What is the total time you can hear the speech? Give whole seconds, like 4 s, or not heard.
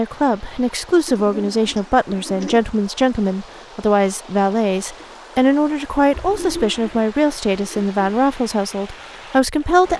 10 s.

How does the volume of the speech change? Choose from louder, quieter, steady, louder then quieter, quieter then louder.
steady.